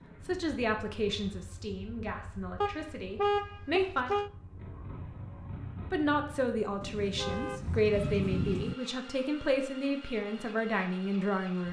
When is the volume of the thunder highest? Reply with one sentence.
The loudest moment of the thunder is at 8 seconds.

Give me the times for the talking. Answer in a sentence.
The talking can be heard from 0.2 to 4.1 s and from 5.9 to 11.6 s.